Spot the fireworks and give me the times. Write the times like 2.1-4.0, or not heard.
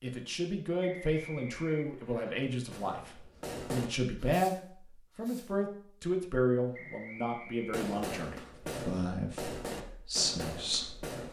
2.4-5.6, 7.7-11.2.